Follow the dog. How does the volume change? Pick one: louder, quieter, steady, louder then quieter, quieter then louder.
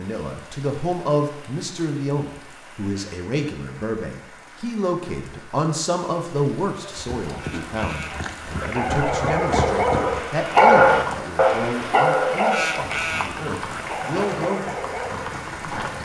louder then quieter.